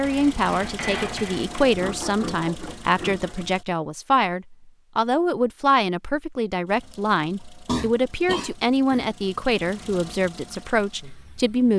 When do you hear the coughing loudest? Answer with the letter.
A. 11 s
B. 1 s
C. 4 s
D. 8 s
D.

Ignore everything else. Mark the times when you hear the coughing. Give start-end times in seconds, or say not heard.
7.7-9.1.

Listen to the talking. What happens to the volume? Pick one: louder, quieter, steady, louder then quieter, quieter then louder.
steady.